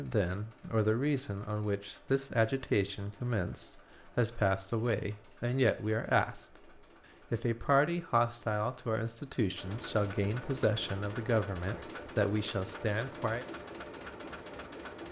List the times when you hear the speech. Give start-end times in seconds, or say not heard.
0.0-6.7, 7.3-13.4.